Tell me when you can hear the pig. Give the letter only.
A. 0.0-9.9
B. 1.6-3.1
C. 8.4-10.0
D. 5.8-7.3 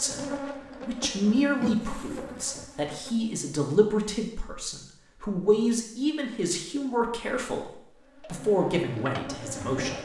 B.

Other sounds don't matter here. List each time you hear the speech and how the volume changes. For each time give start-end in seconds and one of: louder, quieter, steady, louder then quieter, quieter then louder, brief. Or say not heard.
0.0-9.9 steady.